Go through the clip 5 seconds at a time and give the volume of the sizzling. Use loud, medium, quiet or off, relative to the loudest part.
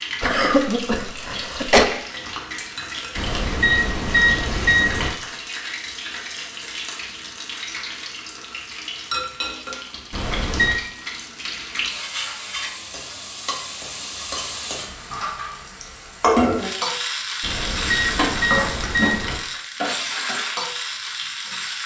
medium, medium, medium, loud, loud.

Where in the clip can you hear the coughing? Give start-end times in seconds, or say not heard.
0.2-1.9.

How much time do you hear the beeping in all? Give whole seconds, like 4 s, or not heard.
5 s.